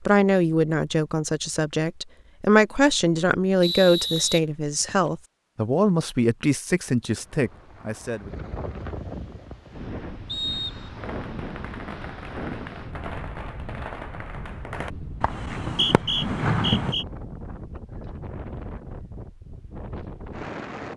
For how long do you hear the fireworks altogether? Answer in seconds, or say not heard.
6 s.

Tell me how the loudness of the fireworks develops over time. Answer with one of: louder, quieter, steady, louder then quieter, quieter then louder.
louder.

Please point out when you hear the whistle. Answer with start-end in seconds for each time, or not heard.
3.6-5.1, 10.2-10.9, 15.7-17.1.